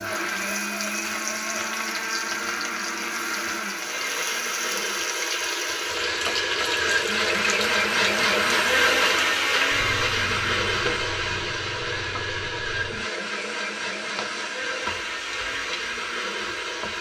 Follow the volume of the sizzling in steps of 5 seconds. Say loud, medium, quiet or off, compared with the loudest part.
loud, loud, medium, medium.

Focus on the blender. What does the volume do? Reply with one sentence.
The volume of the blender goes up, then down.